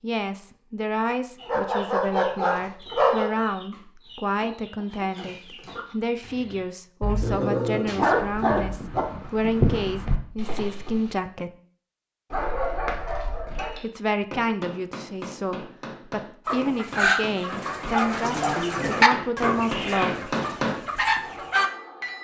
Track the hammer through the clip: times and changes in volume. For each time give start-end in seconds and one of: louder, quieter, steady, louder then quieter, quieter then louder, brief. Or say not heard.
13.5-22.1 louder.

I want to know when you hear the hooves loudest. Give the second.
10 s.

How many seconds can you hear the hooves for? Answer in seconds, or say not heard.
3 s.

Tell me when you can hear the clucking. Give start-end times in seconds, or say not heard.
1.4-6.6, 16.4-21.7.